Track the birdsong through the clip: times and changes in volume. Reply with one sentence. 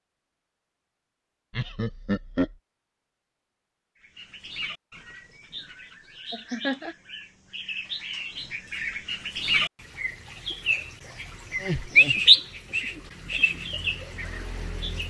The birdsong can be heard from 4.2 to 15.0 s, getting louder then quieter.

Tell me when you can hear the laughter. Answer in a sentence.
The laughter can be heard from 1.5 to 2.5 s, from 6.3 to 7.0 s and from 11.5 to 12.2 s.